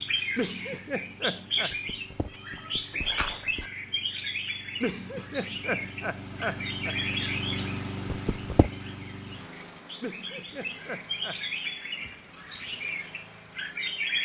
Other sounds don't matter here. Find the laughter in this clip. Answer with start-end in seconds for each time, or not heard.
0.3-1.7, 4.8-7.4, 10.0-11.4.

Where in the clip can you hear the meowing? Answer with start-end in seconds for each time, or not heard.
1.7-3.7, 8.1-8.7.